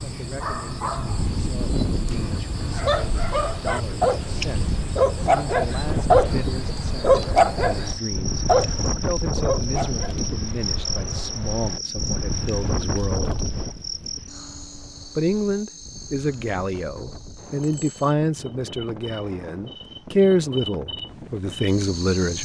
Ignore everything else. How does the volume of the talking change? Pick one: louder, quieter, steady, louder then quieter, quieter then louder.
louder.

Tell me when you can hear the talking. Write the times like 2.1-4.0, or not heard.
0.0-13.3, 15.2-22.4.